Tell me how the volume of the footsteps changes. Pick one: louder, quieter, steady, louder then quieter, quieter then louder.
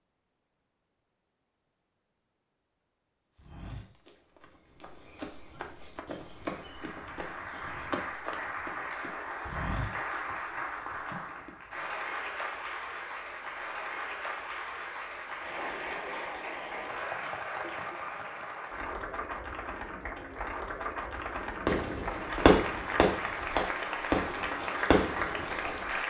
louder.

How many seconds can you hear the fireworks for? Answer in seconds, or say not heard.
4 s.